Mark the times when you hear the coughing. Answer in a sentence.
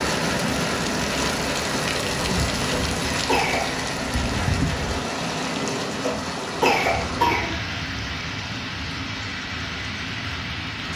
You can hear the coughing from 2.7 to 3.7 s and from 6.0 to 7.5 s.